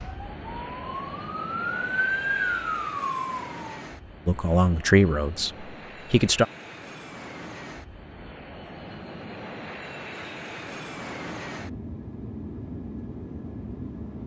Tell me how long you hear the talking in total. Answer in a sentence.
You can hear the talking for 2 seconds altogether.